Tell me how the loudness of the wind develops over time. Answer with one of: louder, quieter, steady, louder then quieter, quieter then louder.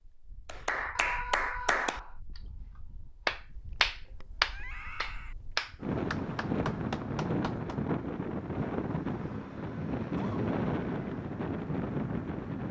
louder.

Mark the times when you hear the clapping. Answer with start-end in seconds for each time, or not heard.
0.5-7.8.